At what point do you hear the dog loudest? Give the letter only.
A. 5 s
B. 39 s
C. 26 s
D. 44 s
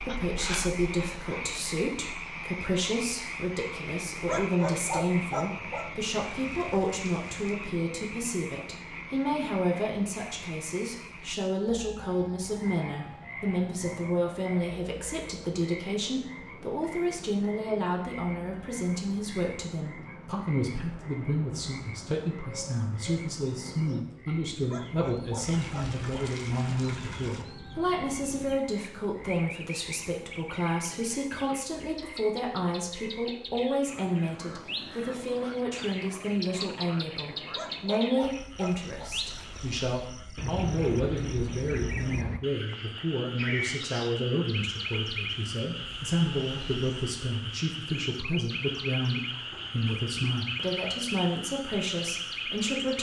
A.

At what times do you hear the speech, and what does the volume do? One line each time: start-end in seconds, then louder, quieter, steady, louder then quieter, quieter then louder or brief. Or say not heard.
0.0-52.9 steady.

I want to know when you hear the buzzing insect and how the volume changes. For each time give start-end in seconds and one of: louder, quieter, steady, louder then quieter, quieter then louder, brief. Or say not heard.
not heard.